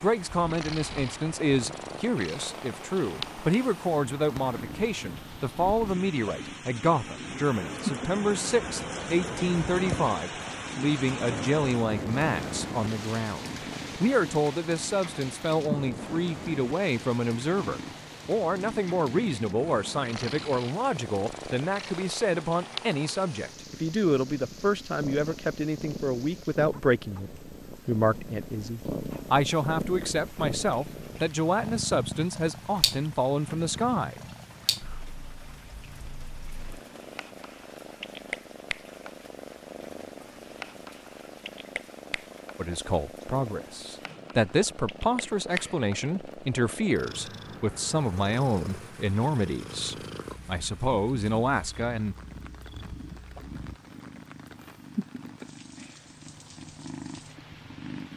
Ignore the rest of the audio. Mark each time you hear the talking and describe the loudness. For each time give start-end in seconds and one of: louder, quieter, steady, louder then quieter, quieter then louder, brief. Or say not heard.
0.0-34.2 steady
42.5-52.1 steady.